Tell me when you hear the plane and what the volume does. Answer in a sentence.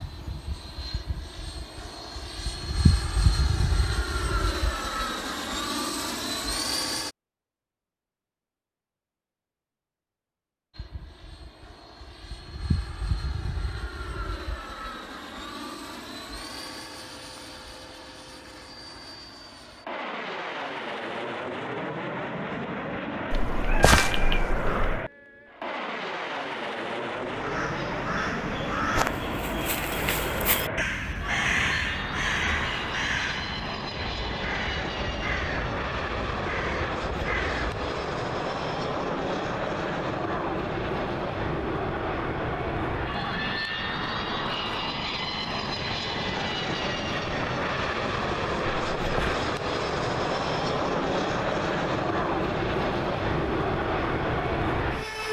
The plane can be heard from 0.0 to 7.2 s, getting louder; and from 10.7 to 55.2 s, getting louder.